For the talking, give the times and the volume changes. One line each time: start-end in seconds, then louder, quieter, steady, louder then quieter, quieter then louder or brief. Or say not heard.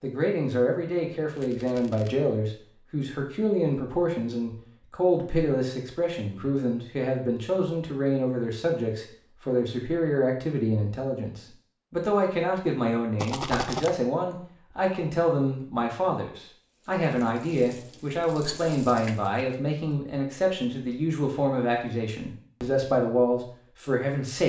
0.0-24.4 steady.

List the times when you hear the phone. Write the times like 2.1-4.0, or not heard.
not heard.